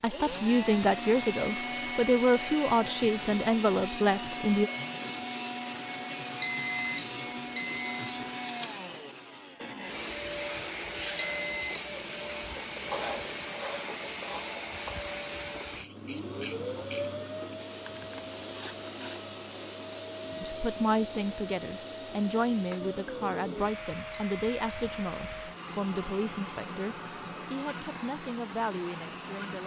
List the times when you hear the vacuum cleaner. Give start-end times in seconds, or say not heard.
0.0-29.6.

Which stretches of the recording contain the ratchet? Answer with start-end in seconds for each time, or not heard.
11.5-19.3.